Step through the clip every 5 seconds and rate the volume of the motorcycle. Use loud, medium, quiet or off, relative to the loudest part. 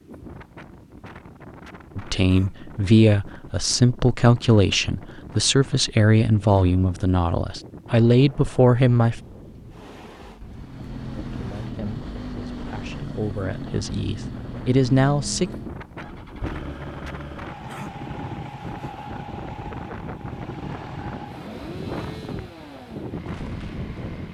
off, off, loud, loud, medium.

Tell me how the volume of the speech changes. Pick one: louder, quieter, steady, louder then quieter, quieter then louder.
quieter then louder.